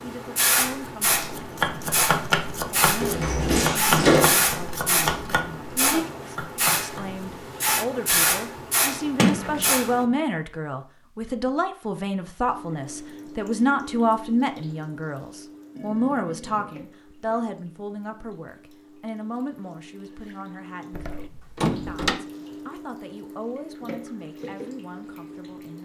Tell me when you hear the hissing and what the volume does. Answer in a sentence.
The hissing can be heard from 0.0 to 10.1 s, at a steady volume.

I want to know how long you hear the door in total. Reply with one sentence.
The door can be heard for 3 seconds in total.